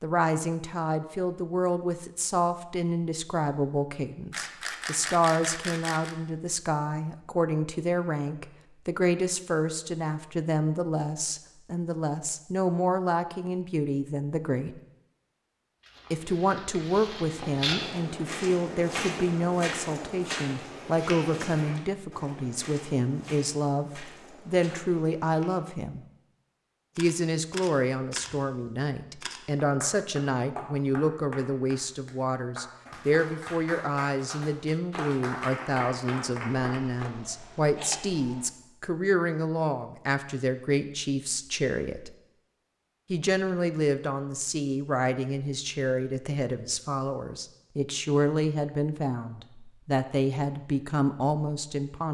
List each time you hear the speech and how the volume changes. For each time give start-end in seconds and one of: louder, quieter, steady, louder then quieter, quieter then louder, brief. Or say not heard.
0.0-14.8 steady
16.1-26.1 steady
26.9-42.1 steady
43.1-52.0 steady.